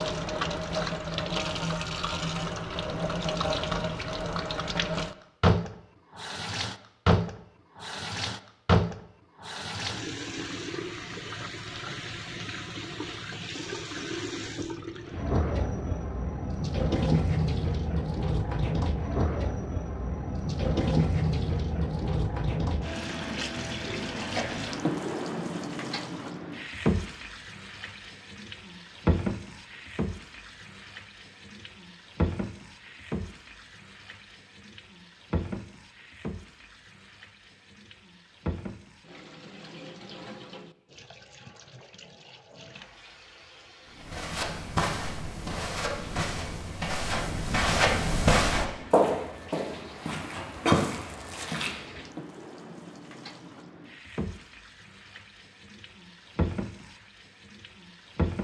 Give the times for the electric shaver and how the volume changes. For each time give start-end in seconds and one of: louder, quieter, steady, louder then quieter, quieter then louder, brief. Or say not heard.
not heard.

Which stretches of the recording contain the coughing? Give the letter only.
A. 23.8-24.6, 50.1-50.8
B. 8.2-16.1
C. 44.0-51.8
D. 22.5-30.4
A.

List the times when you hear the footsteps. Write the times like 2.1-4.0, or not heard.
44.0-51.8.